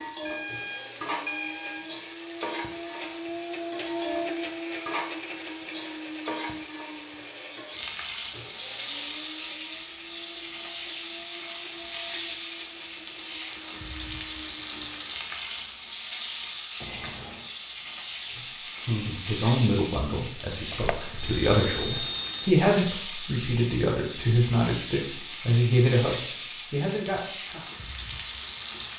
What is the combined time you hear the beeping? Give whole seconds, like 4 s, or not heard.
4 s.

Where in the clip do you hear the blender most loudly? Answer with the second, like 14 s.
4 s.